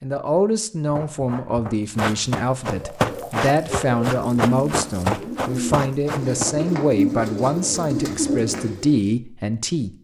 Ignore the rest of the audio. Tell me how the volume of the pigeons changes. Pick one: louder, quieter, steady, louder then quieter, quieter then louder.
louder.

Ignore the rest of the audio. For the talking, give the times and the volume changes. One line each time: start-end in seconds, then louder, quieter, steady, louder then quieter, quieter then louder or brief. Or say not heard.
0.0-9.9 steady.